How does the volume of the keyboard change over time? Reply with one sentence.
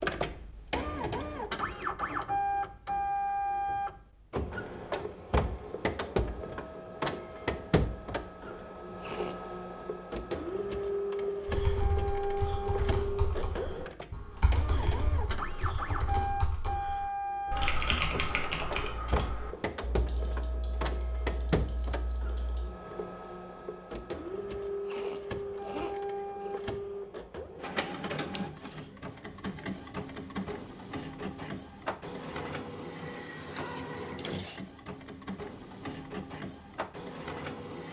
The volume of the keyboard goes up, then down.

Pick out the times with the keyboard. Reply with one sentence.
The keyboard can be heard from 11.4 to 22.7 s.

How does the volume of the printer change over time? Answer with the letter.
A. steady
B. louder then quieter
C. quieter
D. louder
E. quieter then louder
C.